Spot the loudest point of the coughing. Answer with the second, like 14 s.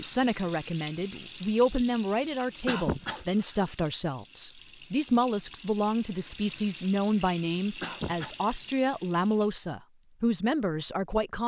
3 s.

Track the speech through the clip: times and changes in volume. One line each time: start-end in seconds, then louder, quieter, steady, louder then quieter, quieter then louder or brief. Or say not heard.
0.0-11.4 steady.